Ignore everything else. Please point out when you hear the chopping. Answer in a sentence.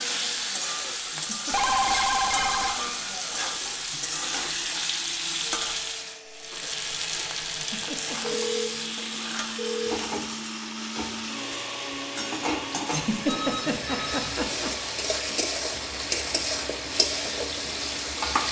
You can't hear the chopping here.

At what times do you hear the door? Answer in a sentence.
You can't hear the door here.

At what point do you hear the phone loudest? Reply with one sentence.
The volume of the phone peaks at 2 seconds.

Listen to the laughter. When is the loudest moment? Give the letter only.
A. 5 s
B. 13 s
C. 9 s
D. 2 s
B.